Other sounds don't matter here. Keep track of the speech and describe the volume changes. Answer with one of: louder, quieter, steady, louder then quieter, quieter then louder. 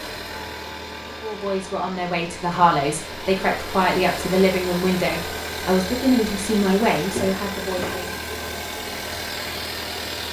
steady.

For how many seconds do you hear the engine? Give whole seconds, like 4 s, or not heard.
10 s.